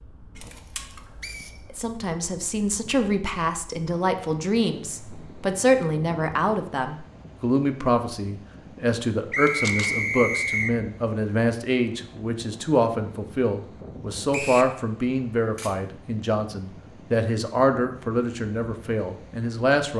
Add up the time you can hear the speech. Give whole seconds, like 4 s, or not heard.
18 s.